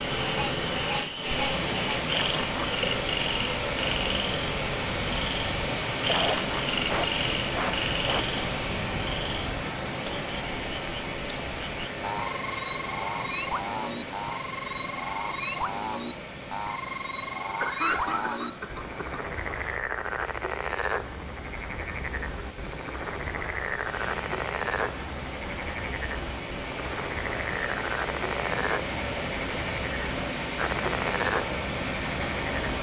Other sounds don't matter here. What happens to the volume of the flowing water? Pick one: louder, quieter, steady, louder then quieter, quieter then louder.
quieter then louder.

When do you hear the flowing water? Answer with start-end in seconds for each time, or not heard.
0.0-32.7.